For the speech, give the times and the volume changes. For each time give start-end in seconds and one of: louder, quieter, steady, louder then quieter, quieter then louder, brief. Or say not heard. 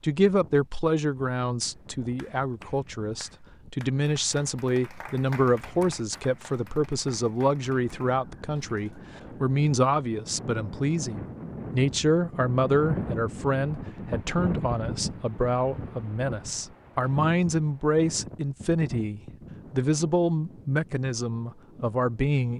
0.0-22.5 steady.